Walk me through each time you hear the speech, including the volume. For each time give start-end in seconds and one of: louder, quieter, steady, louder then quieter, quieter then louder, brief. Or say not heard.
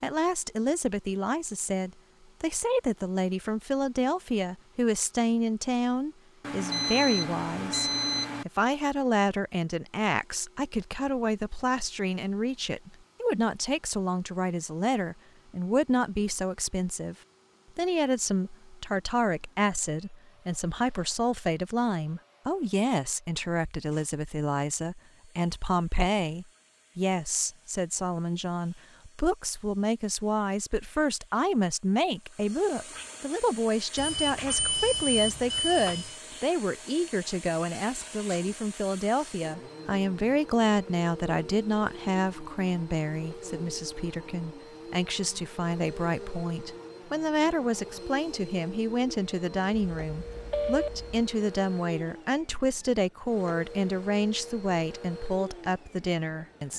0.0-17.1 steady
17.8-56.7 steady.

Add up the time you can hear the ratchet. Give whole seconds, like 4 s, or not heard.
not heard.